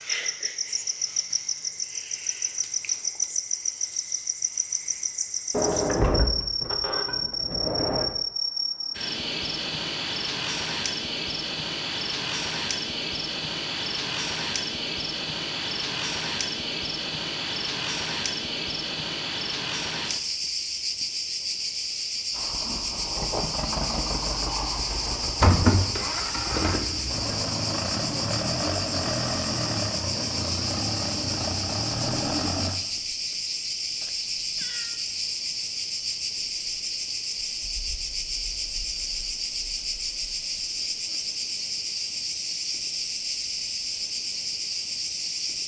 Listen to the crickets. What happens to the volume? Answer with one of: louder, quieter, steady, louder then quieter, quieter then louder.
steady.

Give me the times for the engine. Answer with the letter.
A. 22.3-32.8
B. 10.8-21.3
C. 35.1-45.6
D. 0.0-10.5
A.